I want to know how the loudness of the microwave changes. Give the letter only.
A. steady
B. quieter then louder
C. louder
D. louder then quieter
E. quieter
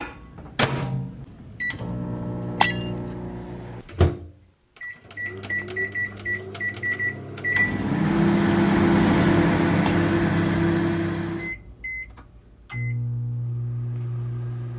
D.